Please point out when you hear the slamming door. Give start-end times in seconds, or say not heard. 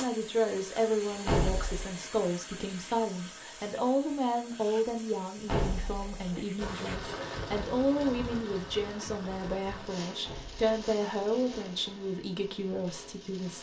1.2-1.9, 5.5-6.4, 10.2-10.7.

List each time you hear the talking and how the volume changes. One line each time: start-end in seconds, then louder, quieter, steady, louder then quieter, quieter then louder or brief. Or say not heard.
0.0-13.5 steady.